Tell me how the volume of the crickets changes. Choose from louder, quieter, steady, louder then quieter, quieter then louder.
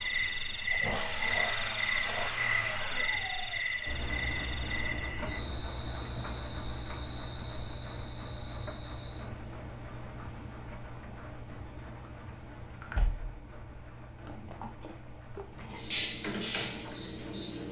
quieter then louder.